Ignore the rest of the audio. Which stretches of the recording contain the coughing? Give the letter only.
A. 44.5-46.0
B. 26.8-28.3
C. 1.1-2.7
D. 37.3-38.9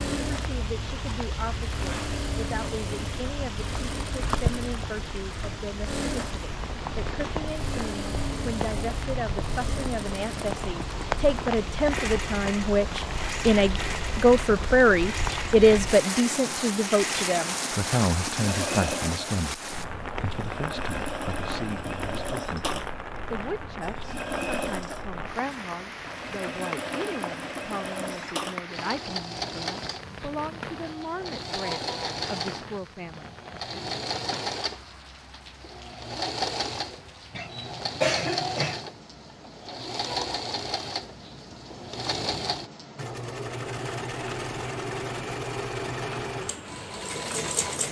D.